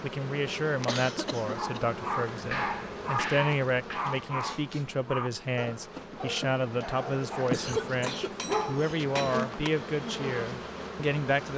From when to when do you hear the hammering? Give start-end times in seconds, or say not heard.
2.4-4.0, 7.8-9.7.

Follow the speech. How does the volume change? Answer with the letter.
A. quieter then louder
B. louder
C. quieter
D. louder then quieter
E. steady
E.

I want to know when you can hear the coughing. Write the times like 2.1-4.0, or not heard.
0.8-2.0, 7.5-9.2.